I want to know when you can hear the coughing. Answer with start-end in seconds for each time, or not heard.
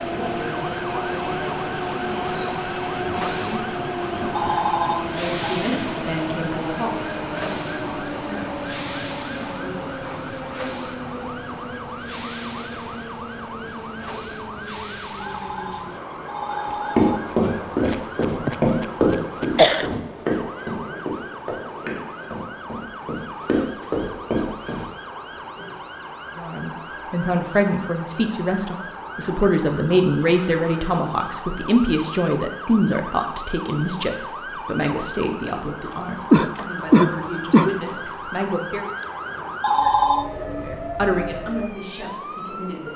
17.9-19.9, 36.3-37.8.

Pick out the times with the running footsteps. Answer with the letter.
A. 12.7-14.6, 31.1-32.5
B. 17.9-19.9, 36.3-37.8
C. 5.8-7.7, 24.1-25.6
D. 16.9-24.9
D.